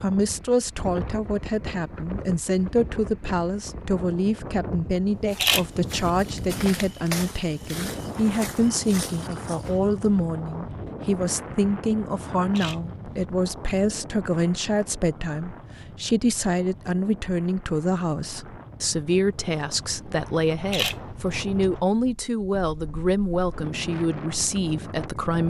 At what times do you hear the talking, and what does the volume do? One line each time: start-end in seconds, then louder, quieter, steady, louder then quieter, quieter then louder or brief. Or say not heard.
0.0-25.4 steady.